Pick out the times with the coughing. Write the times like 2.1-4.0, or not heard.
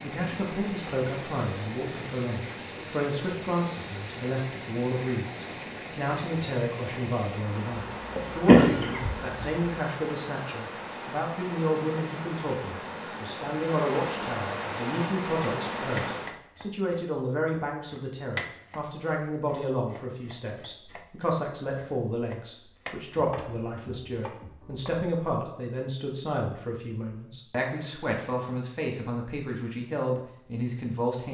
8.2-9.6.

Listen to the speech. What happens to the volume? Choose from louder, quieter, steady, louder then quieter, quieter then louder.
steady.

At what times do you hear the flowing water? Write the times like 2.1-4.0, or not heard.
0.0-16.4.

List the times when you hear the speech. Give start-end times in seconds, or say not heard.
0.0-31.2.